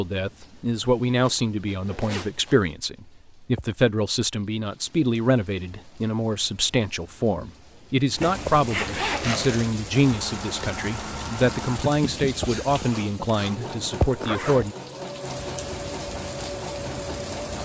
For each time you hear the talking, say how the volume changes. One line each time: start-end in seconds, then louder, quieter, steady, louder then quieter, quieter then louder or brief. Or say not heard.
0.0-14.8 steady.